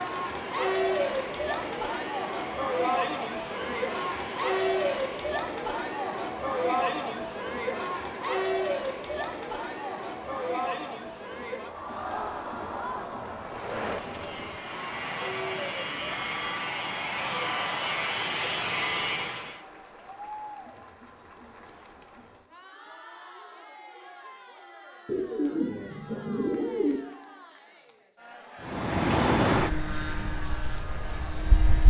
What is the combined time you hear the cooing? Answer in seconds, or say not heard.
2 s.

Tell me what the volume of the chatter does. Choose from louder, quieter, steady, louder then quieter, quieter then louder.
quieter.